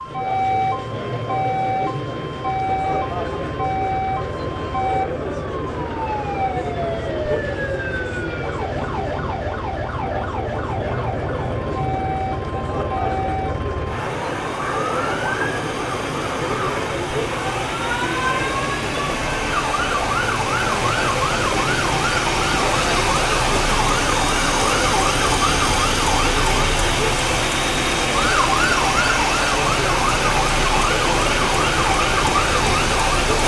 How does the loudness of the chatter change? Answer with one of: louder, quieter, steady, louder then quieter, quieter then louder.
steady.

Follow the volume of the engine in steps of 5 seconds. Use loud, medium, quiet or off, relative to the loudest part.
quiet, quiet, medium, medium, loud, loud, loud.